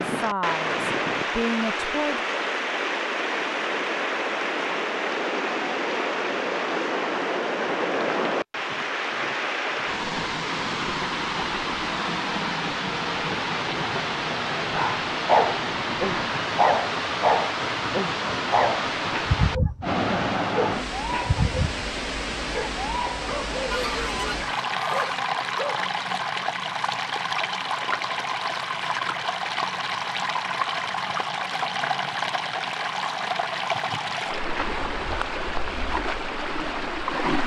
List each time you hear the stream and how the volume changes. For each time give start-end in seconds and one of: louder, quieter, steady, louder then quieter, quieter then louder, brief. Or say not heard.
0.0-37.4 steady.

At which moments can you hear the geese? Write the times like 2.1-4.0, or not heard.
23.7-25.2.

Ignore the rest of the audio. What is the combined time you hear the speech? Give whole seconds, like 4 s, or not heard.
2 s.